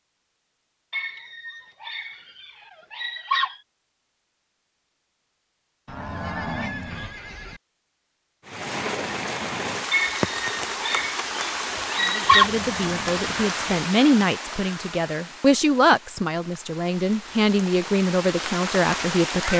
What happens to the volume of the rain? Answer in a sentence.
The volume of the rain goes down, then up.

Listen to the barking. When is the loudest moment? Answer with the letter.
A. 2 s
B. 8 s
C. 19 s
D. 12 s
D.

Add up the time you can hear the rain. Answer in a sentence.
You can hear the rain for 11 seconds altogether.